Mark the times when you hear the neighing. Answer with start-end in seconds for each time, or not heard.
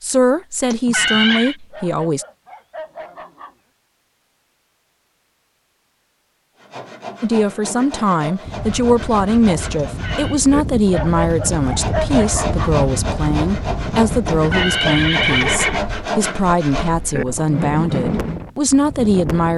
0.7-1.6, 9.8-10.4, 14.3-15.8.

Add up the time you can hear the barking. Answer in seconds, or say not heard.
4 s.